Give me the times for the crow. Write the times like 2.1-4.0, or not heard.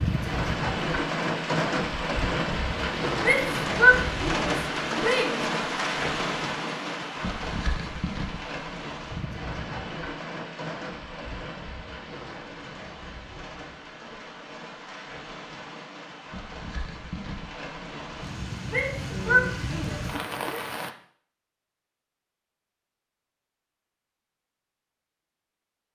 not heard.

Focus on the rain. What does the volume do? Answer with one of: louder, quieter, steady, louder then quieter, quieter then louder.
quieter then louder.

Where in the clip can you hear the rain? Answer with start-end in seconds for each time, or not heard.
0.0-20.9.